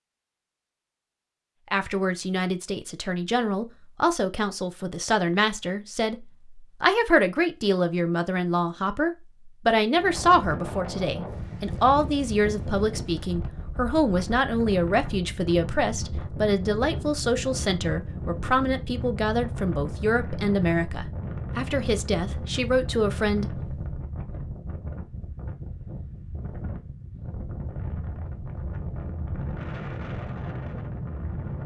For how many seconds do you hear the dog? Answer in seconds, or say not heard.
not heard.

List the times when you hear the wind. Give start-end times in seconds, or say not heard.
9.9-31.6.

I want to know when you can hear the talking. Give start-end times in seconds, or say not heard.
1.7-23.6.